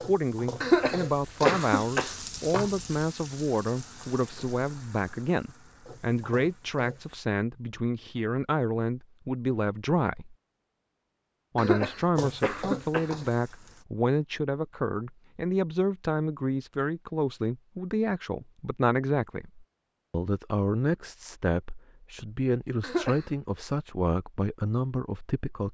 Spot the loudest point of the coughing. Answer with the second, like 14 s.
1 s.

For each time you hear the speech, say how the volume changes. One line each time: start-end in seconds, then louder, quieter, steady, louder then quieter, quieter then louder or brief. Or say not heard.
0.0-10.3 steady
11.6-25.6 steady.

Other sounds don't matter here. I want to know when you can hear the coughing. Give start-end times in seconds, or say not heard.
0.6-2.1, 11.6-13.1, 22.8-23.2.